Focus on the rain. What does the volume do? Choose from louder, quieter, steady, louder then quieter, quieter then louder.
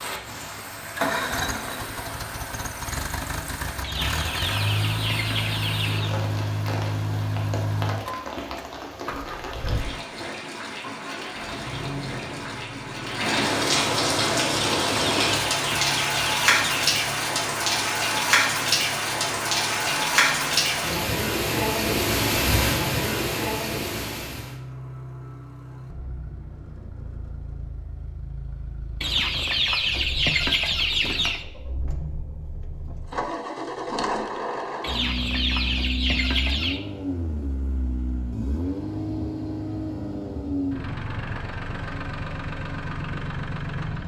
louder.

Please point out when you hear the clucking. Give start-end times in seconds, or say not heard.
3.8-6.2, 14.5-16.9, 29.0-31.4, 34.8-36.8.